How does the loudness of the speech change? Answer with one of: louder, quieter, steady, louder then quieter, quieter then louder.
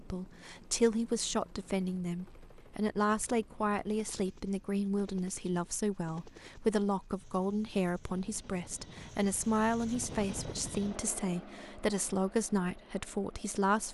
steady.